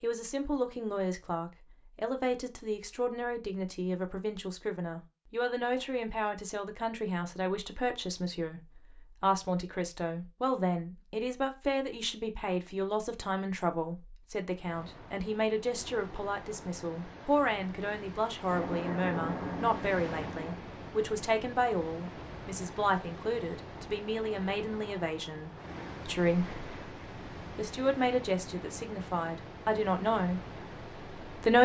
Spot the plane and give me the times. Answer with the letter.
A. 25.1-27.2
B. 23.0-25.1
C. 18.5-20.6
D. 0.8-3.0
C.